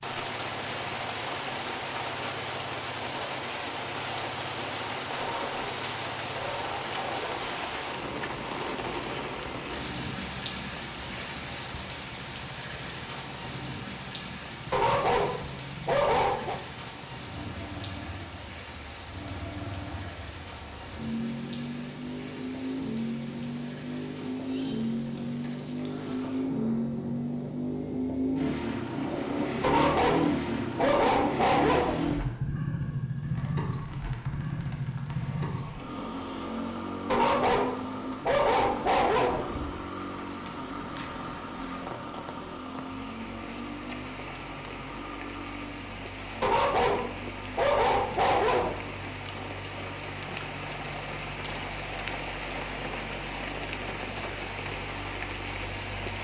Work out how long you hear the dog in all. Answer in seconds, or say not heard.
12 s.